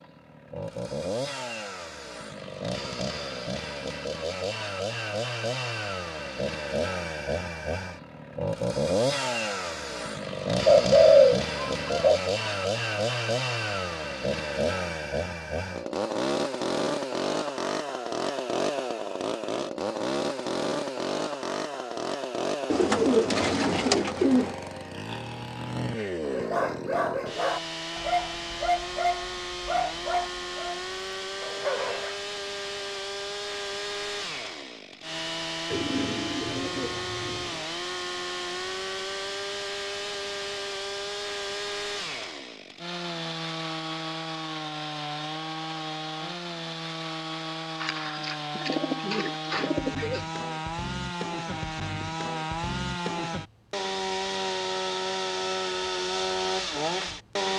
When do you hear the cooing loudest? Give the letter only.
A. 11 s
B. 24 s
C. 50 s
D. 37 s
A.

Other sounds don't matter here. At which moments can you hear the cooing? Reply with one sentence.
You can hear the cooing from 10.7 to 12.2 s, from 22.7 to 24.6 s, from 35.7 to 37.6 s and from 47.8 to 50.2 s.